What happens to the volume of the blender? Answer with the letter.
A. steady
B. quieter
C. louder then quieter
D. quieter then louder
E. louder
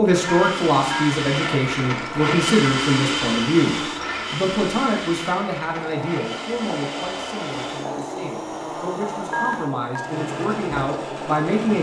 B.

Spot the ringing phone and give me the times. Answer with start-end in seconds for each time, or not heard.
0.2-1.1, 9.3-10.2.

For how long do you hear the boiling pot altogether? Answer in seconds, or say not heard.
6 s.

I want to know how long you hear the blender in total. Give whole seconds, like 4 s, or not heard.
12 s.